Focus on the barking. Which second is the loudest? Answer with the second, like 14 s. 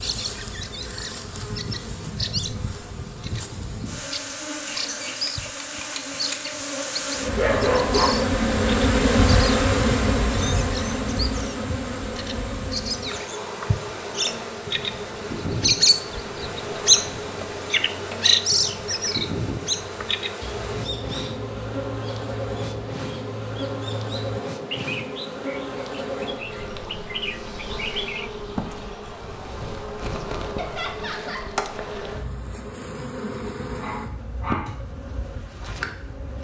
8 s.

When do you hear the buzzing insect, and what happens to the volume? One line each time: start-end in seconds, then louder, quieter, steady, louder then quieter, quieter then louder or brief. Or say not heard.
0.0-36.4 louder then quieter.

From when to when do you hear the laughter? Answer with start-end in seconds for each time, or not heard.
30.6-31.5.